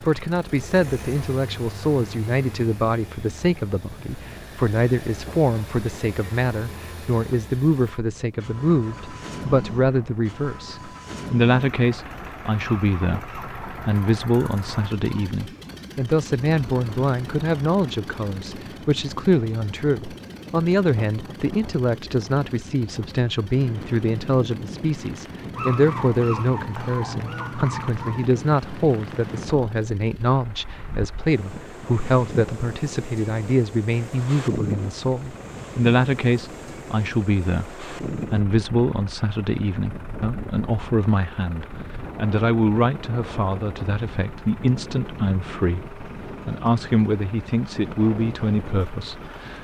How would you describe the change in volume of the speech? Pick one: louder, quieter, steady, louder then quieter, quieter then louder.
steady.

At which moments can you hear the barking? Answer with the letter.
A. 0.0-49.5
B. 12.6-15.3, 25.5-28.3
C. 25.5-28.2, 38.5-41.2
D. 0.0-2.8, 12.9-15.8
B.